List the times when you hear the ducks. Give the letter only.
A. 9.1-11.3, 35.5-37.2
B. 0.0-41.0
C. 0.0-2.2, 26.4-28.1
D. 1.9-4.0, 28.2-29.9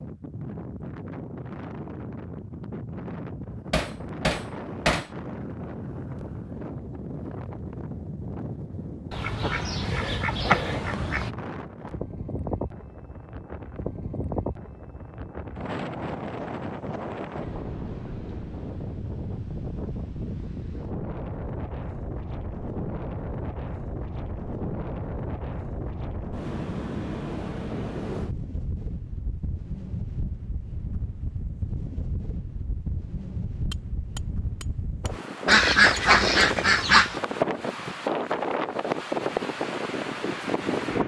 A.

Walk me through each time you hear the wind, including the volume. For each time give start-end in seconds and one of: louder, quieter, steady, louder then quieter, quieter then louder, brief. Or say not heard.
0.0-41.0 louder.